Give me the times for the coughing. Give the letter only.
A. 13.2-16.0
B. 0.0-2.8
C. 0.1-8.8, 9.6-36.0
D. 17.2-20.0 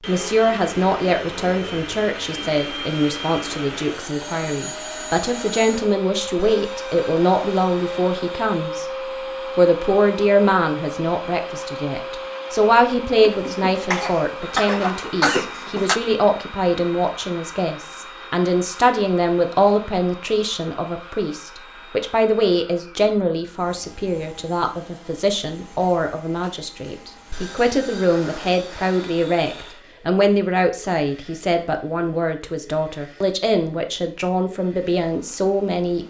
A.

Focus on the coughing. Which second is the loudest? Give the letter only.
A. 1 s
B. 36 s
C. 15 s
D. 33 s
C.